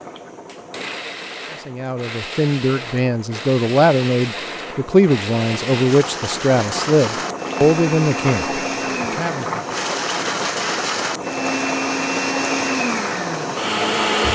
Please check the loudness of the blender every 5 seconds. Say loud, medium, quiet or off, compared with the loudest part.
medium, medium, loud.